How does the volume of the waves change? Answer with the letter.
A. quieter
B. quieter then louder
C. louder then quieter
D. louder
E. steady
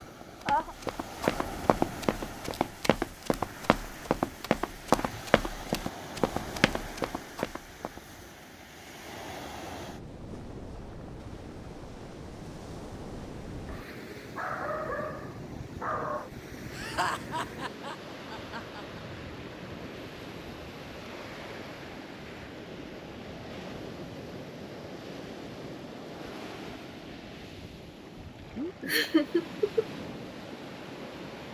E.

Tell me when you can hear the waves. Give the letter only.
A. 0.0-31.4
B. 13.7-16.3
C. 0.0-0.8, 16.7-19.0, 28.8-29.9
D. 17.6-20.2
A.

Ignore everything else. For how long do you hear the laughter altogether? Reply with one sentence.
You can hear the laughter for 4 seconds altogether.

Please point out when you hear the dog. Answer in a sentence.
The dog can be heard from 13.7 to 16.3 s.